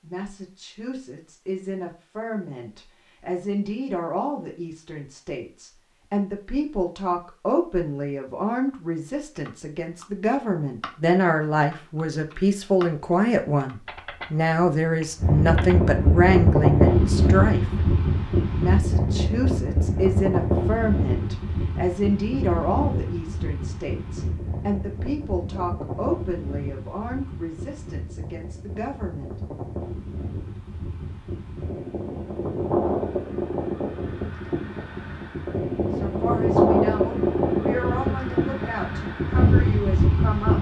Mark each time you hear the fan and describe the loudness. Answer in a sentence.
You can hear the fan from 15.2 to 40.5 s, getting quieter then louder.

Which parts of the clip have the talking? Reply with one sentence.
The talking can be heard from 0.0 to 17.6 s, from 18.6 to 29.4 s and from 36.0 to 40.5 s.